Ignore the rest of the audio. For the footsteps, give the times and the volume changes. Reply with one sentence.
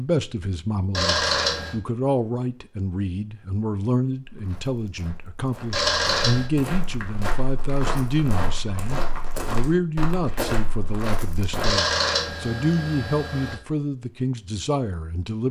You can hear the footsteps from 4.2 to 11.8 s, getting louder.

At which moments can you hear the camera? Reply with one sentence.
The camera can be heard from 0.9 to 1.8 s, from 5.7 to 6.5 s and from 11.6 to 13.6 s.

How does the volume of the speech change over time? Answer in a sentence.
The volume of the speech stays about the same.